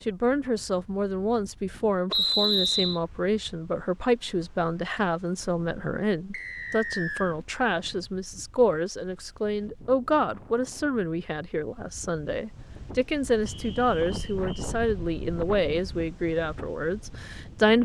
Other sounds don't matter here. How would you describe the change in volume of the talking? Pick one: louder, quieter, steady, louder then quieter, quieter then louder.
steady.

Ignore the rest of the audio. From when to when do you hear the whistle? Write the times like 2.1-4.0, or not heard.
2.1-3.0, 6.3-7.3, 13.4-14.8.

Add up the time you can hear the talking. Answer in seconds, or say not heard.
18 s.